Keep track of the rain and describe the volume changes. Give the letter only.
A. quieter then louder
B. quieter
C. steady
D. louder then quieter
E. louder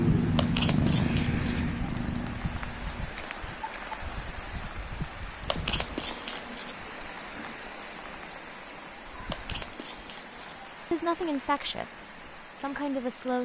B.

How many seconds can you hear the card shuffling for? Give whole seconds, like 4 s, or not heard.
4 s.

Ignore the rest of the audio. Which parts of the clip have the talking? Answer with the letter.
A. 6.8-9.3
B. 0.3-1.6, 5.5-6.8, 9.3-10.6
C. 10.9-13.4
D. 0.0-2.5
C.